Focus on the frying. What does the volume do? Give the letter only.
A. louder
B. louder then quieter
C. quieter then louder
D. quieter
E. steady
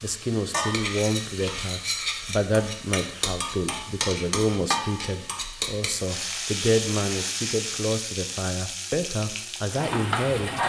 E.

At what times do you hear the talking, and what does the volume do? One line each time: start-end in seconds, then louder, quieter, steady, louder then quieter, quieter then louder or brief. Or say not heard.
0.0-10.6 steady.